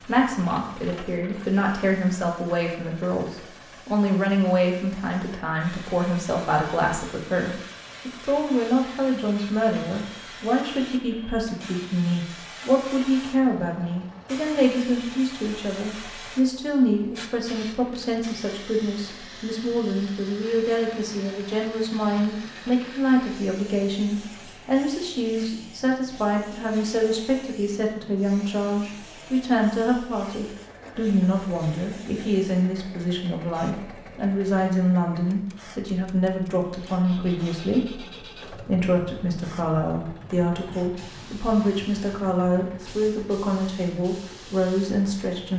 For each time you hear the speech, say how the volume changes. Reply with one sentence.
You can hear the speech from 0.0 to 45.5 s, at a steady volume.